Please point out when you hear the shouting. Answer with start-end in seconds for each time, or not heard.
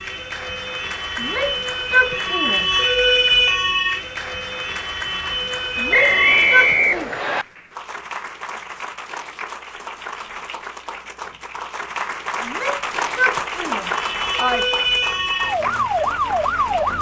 1.2-2.8, 5.8-7.1, 12.4-14.8.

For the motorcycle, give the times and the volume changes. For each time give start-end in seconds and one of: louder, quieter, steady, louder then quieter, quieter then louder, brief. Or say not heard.
not heard.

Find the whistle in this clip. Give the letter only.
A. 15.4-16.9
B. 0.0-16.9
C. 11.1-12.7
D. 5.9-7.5
D.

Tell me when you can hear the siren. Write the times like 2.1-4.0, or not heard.
0.0-6.8, 13.9-16.9.